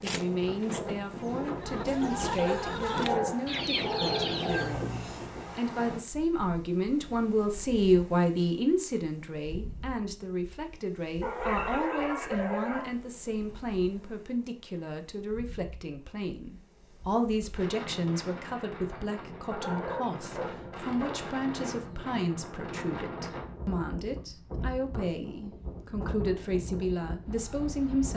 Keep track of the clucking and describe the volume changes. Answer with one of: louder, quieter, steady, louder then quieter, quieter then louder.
louder.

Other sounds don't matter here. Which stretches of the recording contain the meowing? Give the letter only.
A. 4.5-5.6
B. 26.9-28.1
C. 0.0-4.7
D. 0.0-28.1
A.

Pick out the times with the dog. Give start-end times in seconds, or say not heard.
2.4-4.8, 11.2-12.9, 19.5-21.3.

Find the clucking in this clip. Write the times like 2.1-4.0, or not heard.
0.0-4.7.